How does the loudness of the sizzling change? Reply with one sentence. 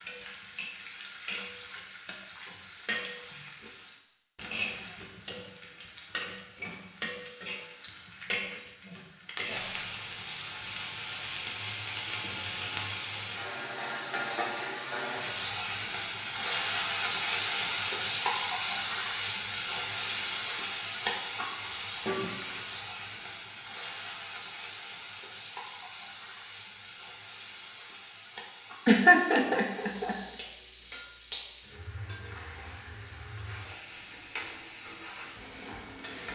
The volume of the sizzling goes up, then down.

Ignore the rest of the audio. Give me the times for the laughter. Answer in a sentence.
You can hear the laughter from 28.9 to 30.2 s.